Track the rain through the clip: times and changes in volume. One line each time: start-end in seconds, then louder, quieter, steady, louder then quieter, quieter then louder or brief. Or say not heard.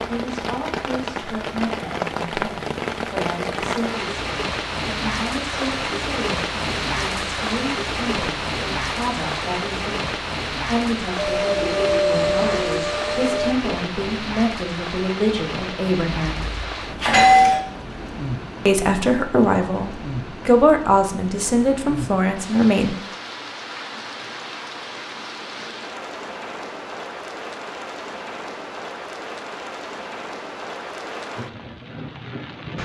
0.0-32.8 quieter.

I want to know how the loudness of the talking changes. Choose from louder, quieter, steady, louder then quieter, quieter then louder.
louder.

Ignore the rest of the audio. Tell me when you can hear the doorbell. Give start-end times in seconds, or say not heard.
16.2-17.6.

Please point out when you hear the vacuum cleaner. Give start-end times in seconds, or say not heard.
11.2-13.6.